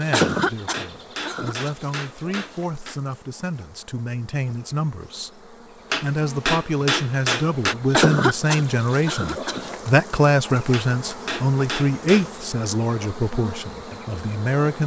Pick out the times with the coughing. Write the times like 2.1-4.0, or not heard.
0.1-1.7, 7.9-9.7.